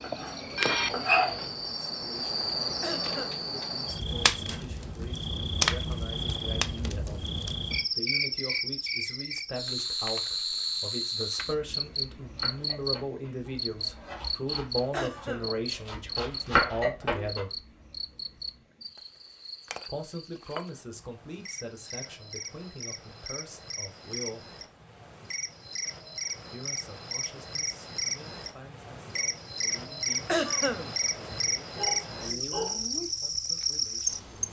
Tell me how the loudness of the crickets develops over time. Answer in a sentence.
The volume of the crickets goes down, then up.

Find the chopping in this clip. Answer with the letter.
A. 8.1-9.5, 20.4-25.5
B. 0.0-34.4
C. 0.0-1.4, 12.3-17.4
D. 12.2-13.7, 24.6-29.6
C.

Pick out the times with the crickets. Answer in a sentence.
The crickets can be heard from 0.0 to 34.4 s.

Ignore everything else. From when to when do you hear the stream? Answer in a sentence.
The stream can't be heard in this clip.